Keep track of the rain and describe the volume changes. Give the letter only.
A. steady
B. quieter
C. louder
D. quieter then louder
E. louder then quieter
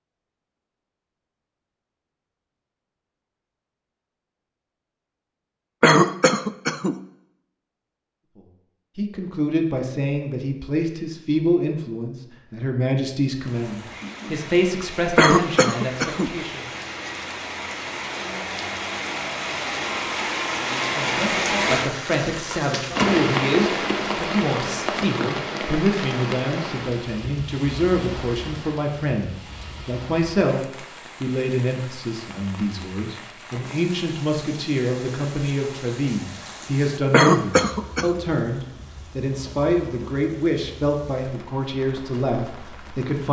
E.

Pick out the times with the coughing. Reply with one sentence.
You can hear the coughing from 5.8 to 7.0 s, from 15.2 to 16.4 s and from 37.1 to 38.2 s.